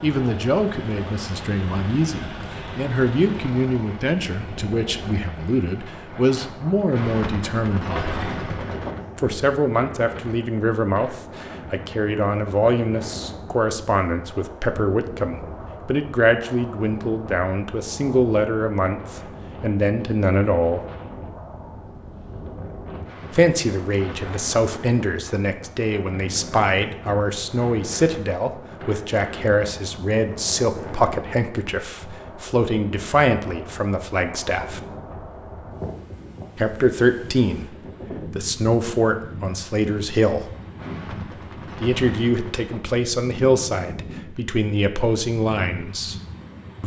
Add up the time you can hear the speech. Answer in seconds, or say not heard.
40 s.